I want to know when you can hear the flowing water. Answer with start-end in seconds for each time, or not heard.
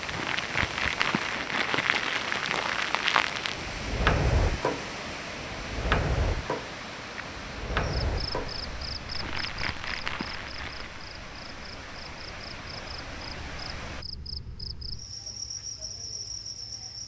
0.0-14.1.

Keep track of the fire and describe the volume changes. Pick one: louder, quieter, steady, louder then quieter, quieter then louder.
quieter.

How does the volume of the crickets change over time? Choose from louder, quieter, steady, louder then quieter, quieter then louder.
quieter then louder.